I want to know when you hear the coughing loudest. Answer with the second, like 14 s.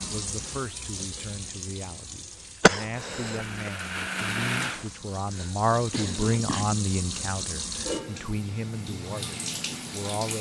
3 s.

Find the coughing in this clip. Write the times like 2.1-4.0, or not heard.
2.6-3.7, 5.3-6.7.